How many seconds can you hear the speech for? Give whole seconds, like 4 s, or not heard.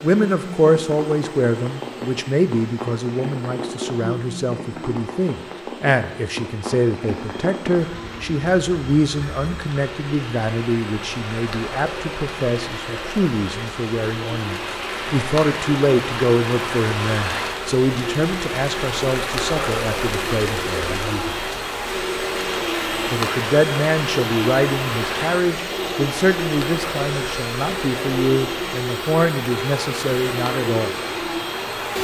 29 s.